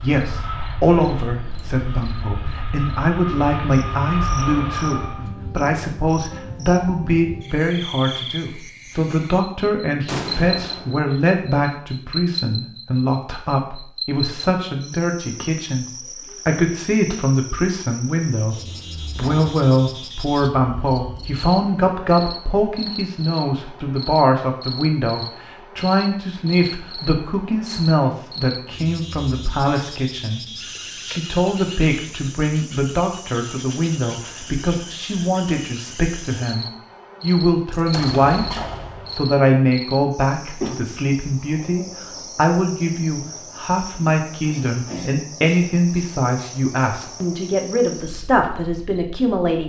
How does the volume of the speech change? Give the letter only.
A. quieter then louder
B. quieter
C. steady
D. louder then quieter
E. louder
C.